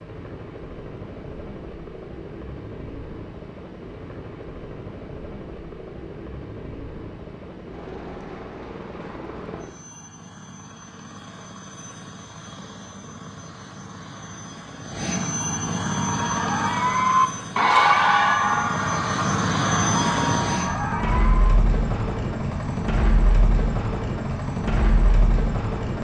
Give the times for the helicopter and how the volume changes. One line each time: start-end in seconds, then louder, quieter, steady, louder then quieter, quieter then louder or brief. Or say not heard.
0.0-25.9 louder.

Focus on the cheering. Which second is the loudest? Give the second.
18 s.